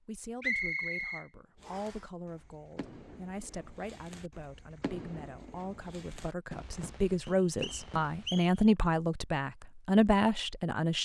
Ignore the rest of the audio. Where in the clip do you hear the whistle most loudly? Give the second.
1 s.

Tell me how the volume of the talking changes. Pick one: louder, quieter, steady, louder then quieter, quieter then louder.
louder.